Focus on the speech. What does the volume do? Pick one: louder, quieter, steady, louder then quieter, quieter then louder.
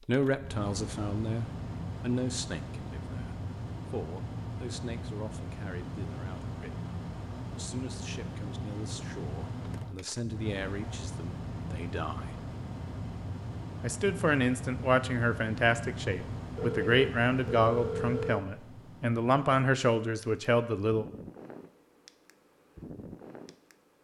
quieter then louder.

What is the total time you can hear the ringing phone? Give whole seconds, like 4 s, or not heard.
2 s.